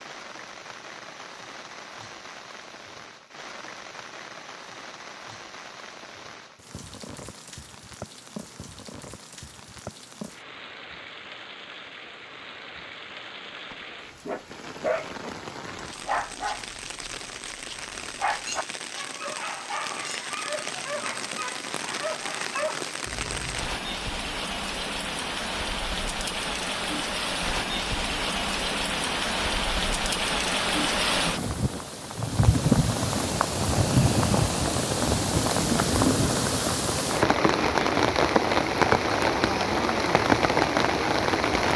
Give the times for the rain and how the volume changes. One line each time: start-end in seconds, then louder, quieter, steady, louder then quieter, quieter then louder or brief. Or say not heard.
0.0-41.7 louder.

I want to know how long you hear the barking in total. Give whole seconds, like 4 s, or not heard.
10 s.